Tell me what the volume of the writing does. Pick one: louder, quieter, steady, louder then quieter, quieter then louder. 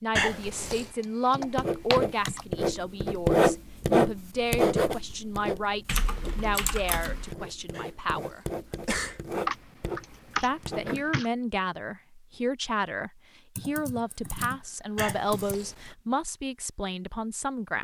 quieter.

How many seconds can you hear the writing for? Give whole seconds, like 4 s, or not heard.
10 s.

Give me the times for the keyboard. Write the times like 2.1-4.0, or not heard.
1.3-2.4, 5.8-7.3, 9.4-11.3, 13.6-15.6.